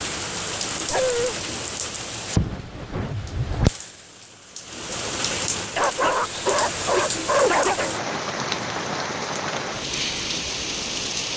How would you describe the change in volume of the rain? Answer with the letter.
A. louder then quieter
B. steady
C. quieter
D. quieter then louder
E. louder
B.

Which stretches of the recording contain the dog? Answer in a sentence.
You can hear the dog from 0.8 to 1.4 s and from 5.8 to 8.0 s.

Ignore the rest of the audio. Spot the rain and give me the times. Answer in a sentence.
The rain can be heard from 0.0 to 11.3 s.